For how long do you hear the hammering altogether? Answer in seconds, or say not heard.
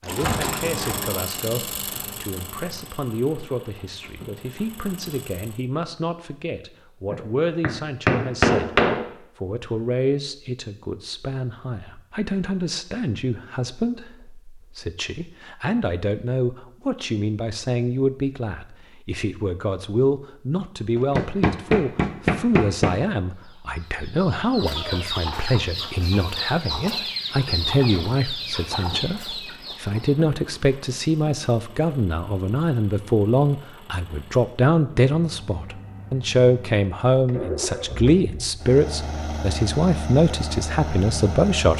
4 s.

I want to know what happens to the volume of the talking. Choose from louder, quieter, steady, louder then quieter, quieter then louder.
louder.